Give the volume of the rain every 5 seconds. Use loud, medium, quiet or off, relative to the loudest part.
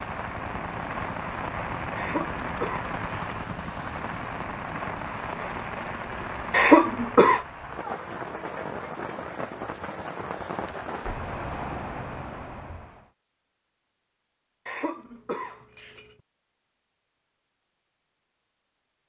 loud, loud, loud, off.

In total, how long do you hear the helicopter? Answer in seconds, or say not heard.
7 s.